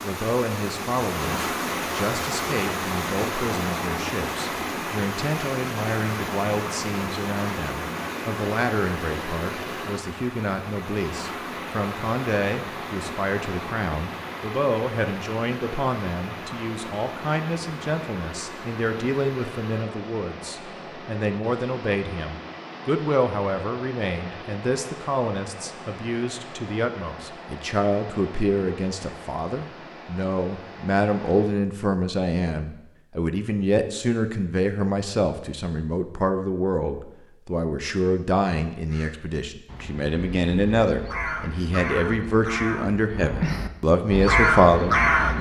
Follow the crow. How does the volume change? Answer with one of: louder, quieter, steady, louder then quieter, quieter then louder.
louder.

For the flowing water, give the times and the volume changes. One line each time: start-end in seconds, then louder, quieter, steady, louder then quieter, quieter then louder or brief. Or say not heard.
0.0-31.5 quieter.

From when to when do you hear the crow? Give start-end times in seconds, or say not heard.
38.9-45.3.